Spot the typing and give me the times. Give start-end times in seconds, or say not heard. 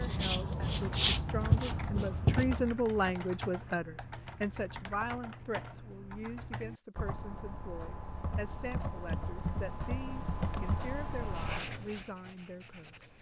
0.8-11.6.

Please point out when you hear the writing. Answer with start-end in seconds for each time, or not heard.
0.0-2.7, 11.2-13.1.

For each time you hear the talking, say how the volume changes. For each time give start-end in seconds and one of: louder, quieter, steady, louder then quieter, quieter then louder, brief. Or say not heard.
0.0-13.1 quieter.